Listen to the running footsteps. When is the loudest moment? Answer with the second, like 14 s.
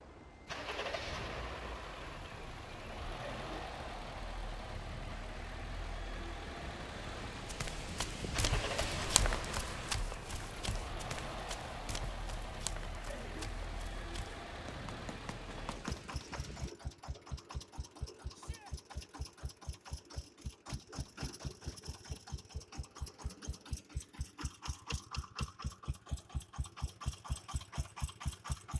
9 s.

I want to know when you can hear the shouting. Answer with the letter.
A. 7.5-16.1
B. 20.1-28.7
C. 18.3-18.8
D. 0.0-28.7
C.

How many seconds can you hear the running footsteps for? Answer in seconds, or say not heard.
9 s.